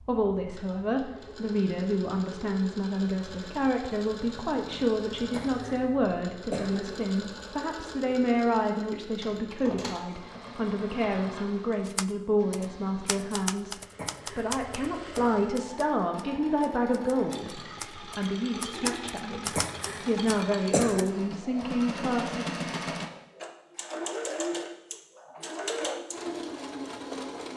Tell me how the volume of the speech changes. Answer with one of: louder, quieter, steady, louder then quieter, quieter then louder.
steady.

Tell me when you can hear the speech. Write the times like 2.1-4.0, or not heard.
0.1-22.4.